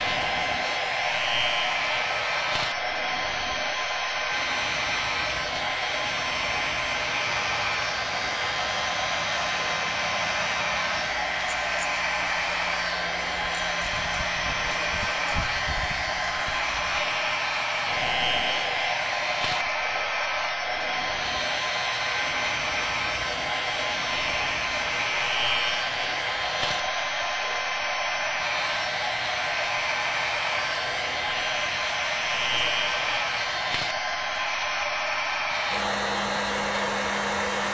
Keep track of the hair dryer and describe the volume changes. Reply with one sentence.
The loudness of the hair dryer stays about the same.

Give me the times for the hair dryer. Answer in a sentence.
You can hear the hair dryer from 0.0 to 37.6 s.